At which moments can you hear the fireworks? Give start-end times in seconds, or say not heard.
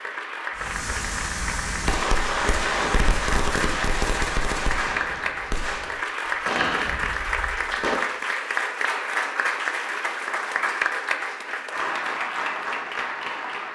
0.6-8.0.